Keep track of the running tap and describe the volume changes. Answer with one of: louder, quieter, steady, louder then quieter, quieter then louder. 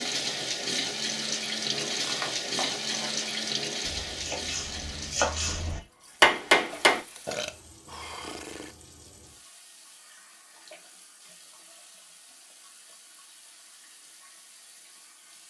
quieter.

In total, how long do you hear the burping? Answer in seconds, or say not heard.
2 s.